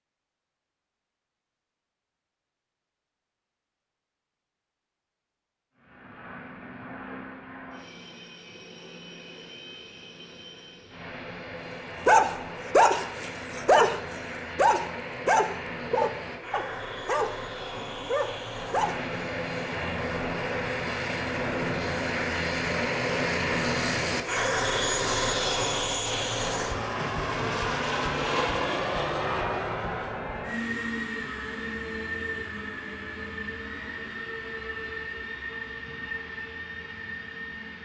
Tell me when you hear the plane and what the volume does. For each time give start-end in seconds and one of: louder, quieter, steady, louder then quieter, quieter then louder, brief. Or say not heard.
5.8-37.8 louder then quieter.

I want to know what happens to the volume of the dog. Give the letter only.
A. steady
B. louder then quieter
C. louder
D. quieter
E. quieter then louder
D.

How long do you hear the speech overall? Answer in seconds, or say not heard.
not heard.